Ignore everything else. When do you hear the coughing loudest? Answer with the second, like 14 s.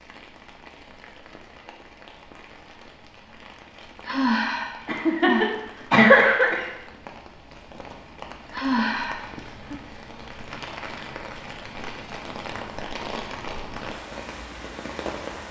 6 s.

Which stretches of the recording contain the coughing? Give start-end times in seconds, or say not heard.
4.8-6.7.